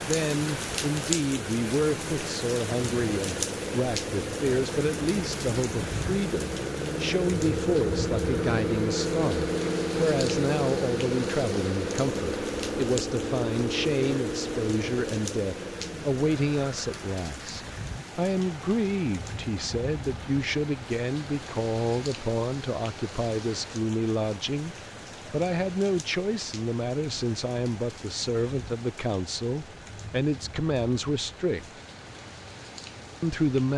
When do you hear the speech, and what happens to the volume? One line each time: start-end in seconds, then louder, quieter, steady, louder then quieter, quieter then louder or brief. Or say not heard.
0.1-31.8 steady
33.2-33.7 brief.